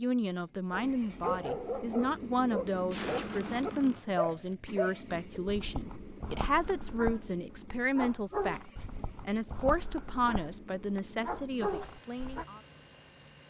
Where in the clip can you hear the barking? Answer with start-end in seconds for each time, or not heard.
0.7-12.4.